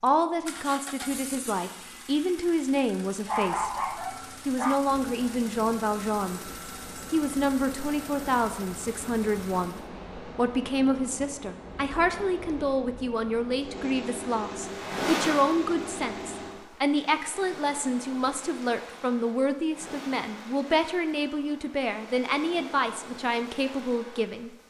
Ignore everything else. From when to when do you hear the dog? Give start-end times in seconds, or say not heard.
3.2-4.8.